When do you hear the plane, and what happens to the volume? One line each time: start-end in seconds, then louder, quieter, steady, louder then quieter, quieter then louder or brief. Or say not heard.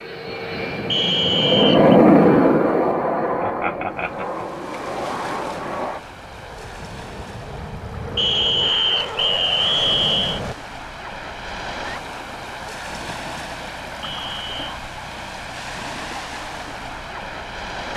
0.0-10.6 quieter then louder.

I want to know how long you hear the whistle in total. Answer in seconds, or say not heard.
4 s.